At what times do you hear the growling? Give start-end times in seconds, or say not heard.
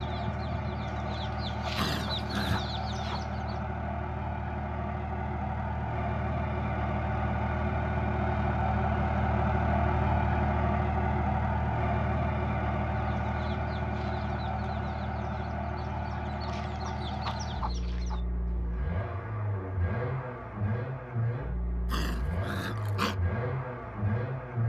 1.8-2.6, 21.9-23.1.